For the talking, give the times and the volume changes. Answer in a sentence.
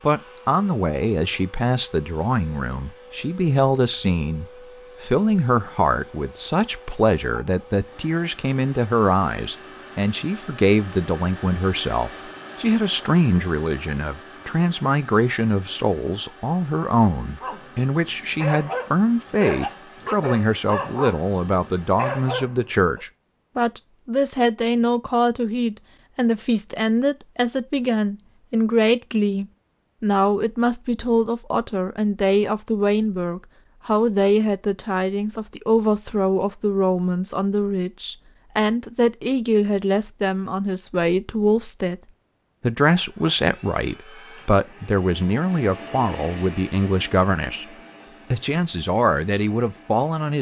The talking can be heard from 0.0 to 42.0 s, at a steady volume; and from 42.6 to 50.3 s, at a steady volume.